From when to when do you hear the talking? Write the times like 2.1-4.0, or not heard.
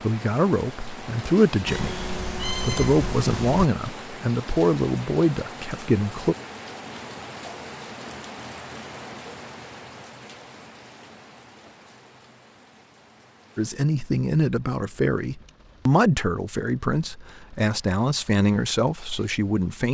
0.0-6.3, 13.6-19.8.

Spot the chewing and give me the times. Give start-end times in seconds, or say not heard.
not heard.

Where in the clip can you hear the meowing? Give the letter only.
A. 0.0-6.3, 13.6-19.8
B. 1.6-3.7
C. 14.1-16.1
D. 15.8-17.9
B.